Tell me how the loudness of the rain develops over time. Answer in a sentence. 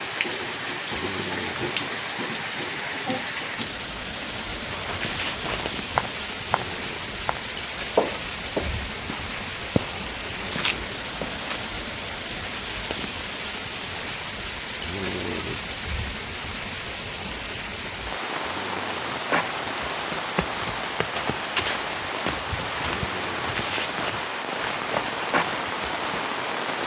The loudness of the rain stays about the same.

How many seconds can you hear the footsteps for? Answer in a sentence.
You can hear the footsteps for 14 seconds altogether.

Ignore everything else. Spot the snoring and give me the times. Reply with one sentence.
You can hear the snoring from 0.9 to 1.8 s, from 6.5 to 7.2 s, from 10.3 to 11.0 s, from 14.8 to 15.7 s, from 18.4 to 19.3 s and from 22.9 to 23.6 s.